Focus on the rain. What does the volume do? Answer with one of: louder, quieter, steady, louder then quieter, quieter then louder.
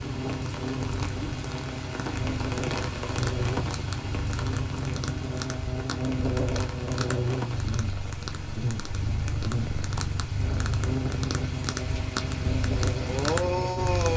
quieter then louder.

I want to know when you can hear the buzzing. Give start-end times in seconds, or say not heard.
0.0-14.0.